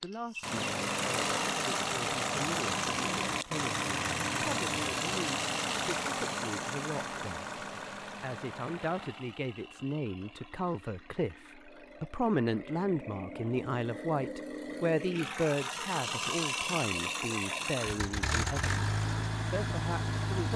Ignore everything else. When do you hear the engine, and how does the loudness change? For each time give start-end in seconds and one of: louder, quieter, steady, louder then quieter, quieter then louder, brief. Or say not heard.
0.0-20.5 quieter then louder.